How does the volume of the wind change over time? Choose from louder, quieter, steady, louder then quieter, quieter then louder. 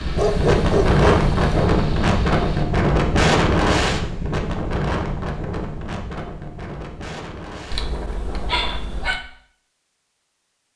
quieter.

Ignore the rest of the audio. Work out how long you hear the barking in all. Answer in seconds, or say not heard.
3 s.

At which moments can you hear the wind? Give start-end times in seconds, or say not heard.
0.0-8.8.